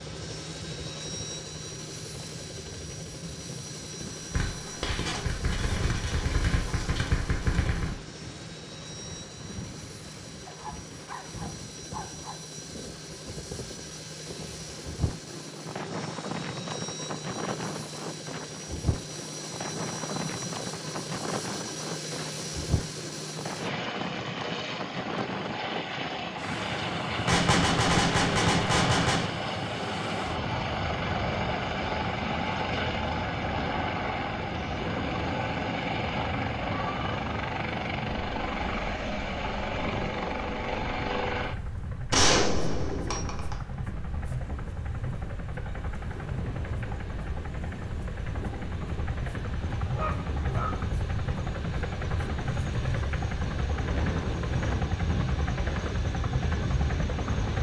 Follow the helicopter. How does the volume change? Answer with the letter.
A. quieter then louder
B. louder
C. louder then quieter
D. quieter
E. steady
B.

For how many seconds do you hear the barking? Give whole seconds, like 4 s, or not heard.
3 s.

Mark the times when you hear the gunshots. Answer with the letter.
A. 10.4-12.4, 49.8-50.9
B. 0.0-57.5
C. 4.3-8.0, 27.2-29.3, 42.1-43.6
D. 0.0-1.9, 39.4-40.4
C.